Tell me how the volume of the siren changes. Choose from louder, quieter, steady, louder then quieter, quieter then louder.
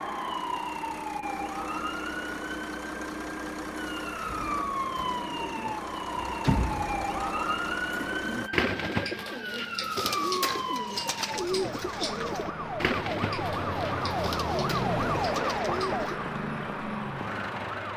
louder.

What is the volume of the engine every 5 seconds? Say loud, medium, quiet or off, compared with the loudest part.
loud, loud, off, off.